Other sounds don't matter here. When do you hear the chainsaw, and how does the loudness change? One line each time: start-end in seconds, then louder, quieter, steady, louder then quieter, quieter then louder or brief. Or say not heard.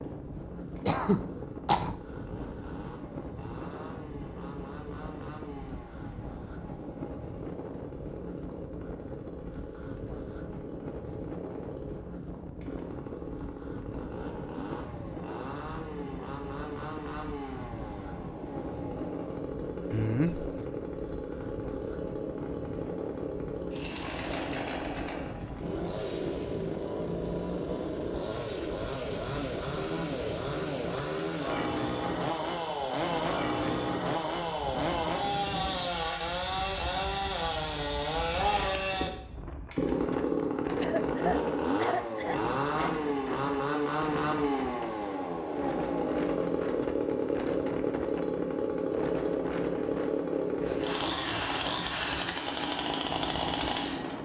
0.0-54.1 louder.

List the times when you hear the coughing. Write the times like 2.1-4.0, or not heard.
0.8-1.9, 19.9-20.6, 40.8-42.9.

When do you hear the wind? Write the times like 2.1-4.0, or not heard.
0.0-54.1.